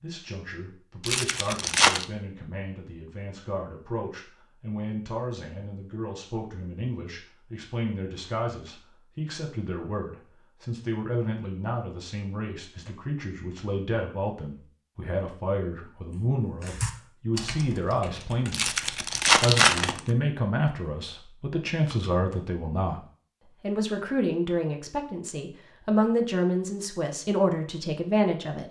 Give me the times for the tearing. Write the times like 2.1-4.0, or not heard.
1.0-2.0, 18.5-20.0.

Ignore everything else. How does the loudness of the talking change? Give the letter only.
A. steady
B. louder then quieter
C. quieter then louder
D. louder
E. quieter
D.